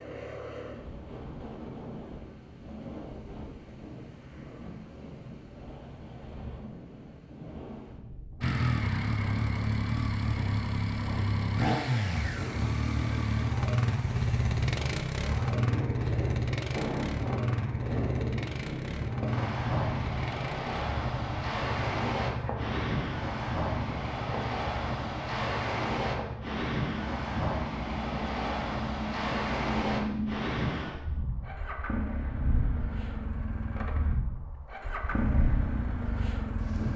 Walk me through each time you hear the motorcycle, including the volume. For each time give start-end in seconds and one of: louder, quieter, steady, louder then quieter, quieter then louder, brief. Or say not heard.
8.4-36.9 quieter.